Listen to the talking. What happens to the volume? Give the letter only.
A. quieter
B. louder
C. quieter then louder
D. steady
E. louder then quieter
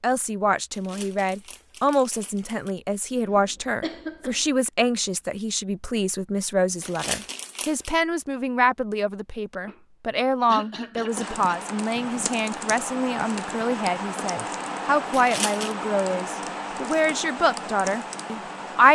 D.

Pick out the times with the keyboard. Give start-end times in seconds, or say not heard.
11.1-18.8.